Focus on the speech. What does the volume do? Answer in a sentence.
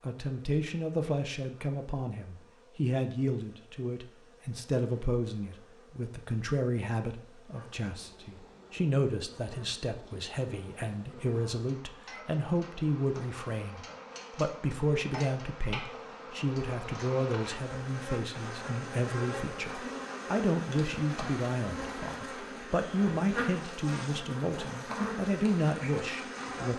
The volume of the speech stays about the same.